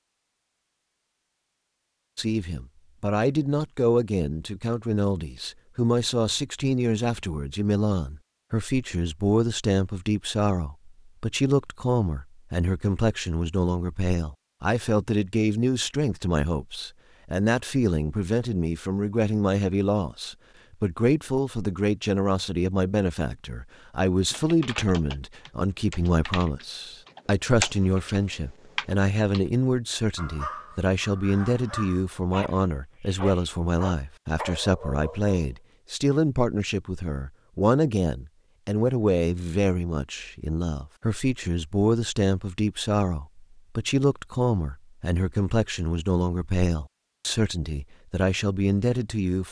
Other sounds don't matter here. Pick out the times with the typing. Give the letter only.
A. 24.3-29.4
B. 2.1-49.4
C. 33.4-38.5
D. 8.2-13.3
A.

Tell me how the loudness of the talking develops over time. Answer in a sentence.
The volume of the talking stays about the same.